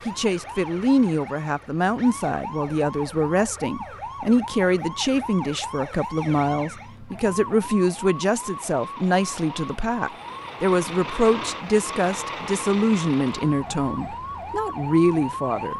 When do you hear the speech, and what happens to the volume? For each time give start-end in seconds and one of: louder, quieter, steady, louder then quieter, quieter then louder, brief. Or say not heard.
0.1-15.7 steady.